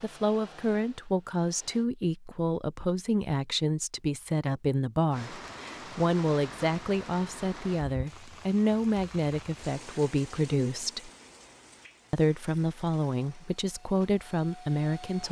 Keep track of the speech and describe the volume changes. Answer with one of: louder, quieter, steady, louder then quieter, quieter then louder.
steady.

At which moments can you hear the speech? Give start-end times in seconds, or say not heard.
0.0-11.1, 12.1-15.2.